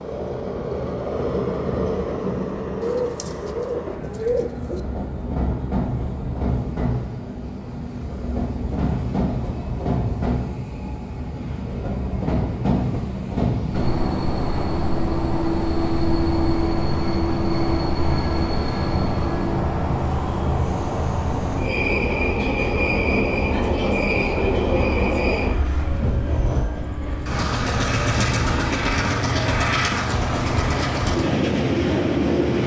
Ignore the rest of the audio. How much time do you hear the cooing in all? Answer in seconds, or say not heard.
2 s.